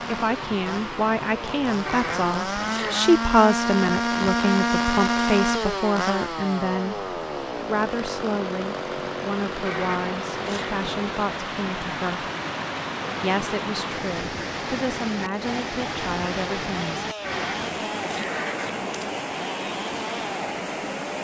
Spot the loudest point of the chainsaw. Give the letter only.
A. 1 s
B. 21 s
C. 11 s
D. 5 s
D.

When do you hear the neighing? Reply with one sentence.
You can hear the neighing from 1.9 to 3.0 s, from 9.7 to 10.8 s and from 17.2 to 19.1 s.